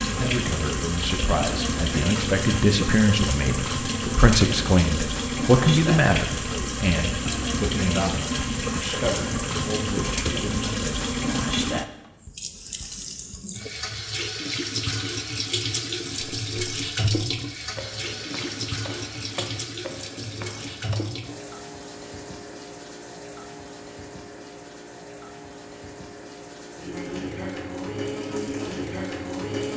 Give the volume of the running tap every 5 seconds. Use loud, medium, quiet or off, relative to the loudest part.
loud, loud, loud, loud, medium, medium.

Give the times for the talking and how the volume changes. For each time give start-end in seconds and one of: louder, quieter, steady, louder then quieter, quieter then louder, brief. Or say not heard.
0.0-10.7 louder then quieter.